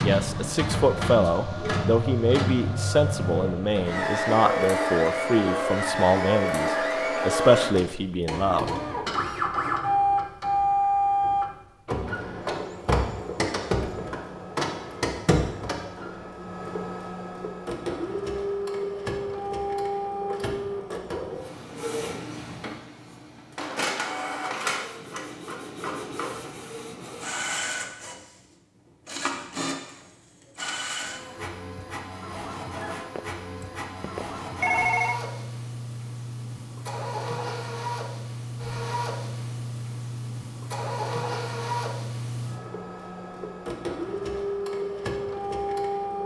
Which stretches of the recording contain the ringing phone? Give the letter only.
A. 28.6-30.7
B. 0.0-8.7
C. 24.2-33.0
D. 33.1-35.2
D.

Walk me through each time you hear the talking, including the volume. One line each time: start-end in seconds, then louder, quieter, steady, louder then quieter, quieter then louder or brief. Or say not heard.
0.0-8.7 steady.